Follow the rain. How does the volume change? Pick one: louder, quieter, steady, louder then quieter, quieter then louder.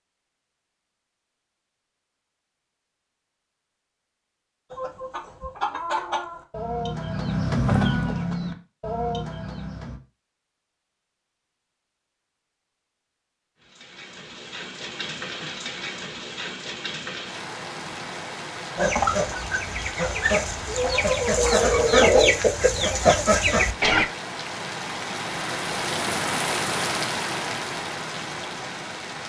louder.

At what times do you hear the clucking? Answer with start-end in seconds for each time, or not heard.
4.7-10.0, 18.8-24.1.